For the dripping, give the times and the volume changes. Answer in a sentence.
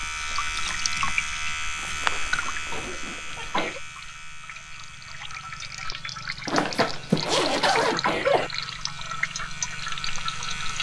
The dripping can be heard from 0.0 to 10.7 s, getting quieter then louder.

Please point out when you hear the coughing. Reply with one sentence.
The coughing can be heard from 2.7 to 3.8 s and from 7.2 to 8.5 s.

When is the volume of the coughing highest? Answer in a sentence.
The volume of the coughing peaks at 8 seconds.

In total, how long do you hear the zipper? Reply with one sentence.
The zipper can be heard for 3 seconds in total.